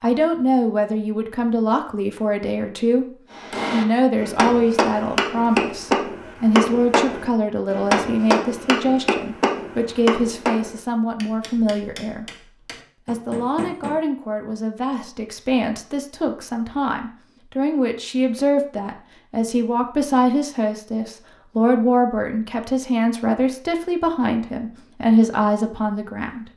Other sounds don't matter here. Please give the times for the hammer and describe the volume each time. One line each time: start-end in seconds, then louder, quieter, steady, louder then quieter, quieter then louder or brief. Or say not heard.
3.3-13.9 quieter.